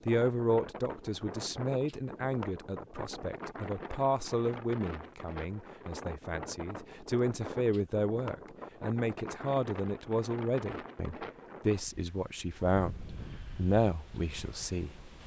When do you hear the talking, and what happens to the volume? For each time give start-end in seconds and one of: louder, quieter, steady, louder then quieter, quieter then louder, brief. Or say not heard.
0.1-14.9 steady.